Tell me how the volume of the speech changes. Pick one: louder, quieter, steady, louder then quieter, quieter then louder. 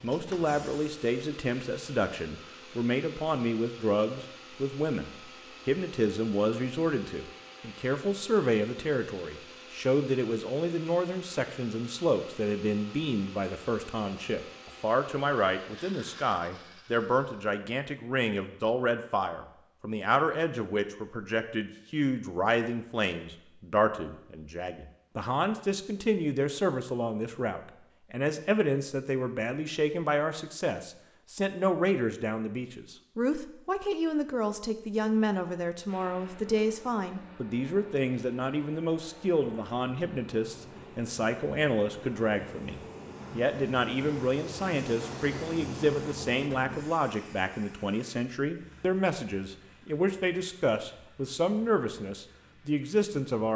steady.